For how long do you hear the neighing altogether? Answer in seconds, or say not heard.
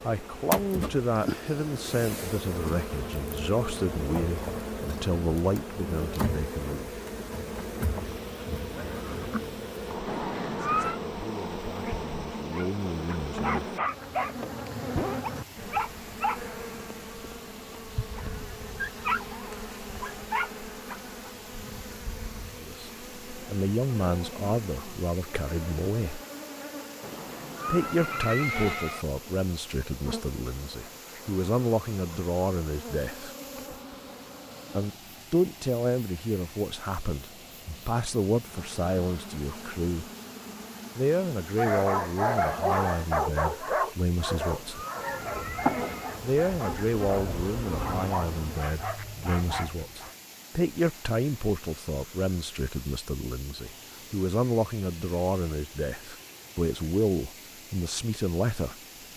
5 s.